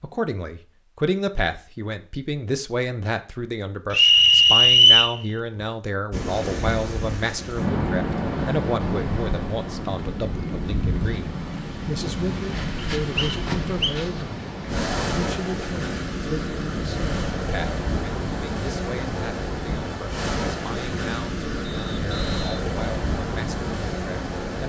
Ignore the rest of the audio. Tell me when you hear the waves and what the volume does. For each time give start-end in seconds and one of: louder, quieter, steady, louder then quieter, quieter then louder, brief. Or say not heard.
6.1-24.6 steady.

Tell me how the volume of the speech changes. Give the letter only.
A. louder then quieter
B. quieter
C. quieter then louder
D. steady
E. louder
B.